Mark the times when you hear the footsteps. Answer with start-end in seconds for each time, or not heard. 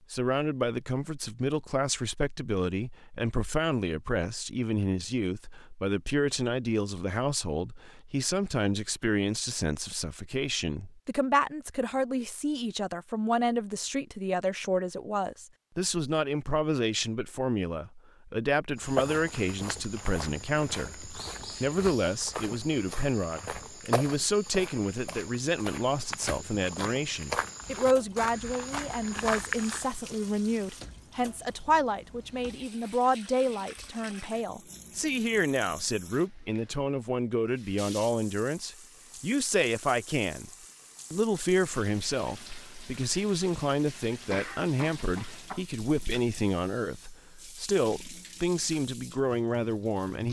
18.8-29.9.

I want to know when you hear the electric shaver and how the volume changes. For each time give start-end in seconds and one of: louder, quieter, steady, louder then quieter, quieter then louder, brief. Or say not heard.
not heard.